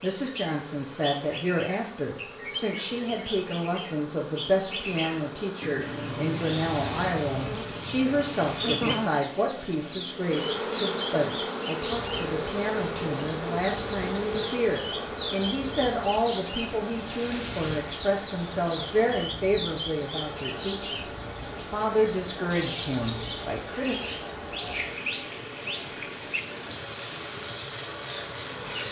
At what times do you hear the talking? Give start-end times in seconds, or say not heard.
0.0-23.9.